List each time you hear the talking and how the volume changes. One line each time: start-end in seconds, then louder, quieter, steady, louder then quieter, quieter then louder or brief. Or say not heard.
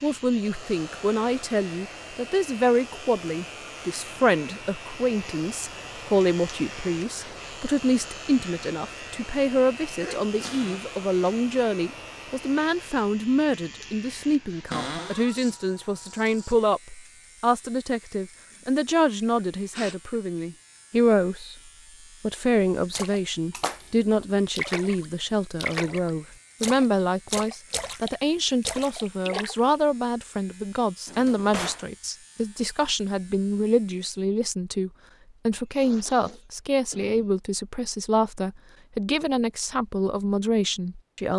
0.0-21.6 steady
22.2-41.3 steady.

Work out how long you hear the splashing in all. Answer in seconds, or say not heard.
7 s.